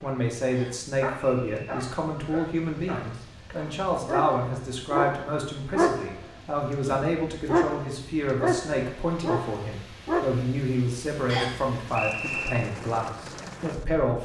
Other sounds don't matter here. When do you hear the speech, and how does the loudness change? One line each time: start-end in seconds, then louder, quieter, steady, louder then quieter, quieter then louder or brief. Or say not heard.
0.0-14.2 steady.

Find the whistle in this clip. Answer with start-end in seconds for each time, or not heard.
0.5-1.8, 11.2-12.6.